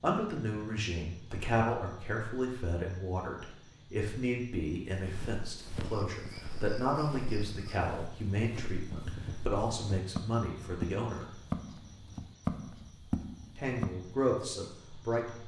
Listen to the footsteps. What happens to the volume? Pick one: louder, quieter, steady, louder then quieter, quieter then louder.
louder.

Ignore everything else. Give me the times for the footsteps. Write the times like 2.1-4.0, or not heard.
4.9-14.1.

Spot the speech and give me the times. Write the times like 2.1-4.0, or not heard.
0.0-11.2, 13.6-15.4.